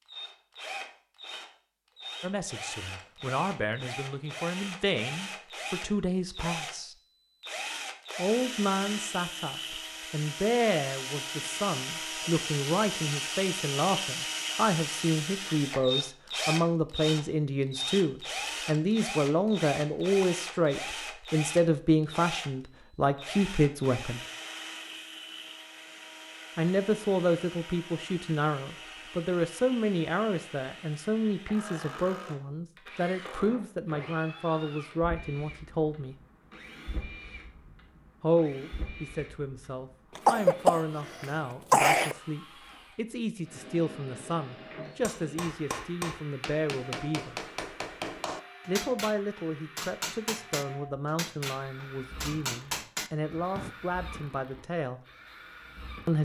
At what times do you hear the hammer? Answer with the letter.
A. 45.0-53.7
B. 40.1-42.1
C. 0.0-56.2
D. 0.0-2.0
A.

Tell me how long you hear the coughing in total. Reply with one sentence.
The coughing can be heard for 2 seconds in total.